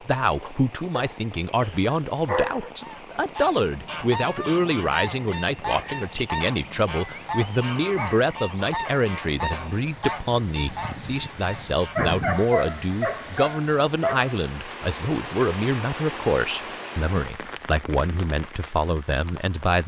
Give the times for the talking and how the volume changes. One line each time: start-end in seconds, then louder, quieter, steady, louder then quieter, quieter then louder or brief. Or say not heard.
0.1-19.8 steady.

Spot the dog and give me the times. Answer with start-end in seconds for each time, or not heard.
0.9-2.7, 11.9-14.3.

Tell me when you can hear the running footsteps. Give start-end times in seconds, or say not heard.
not heard.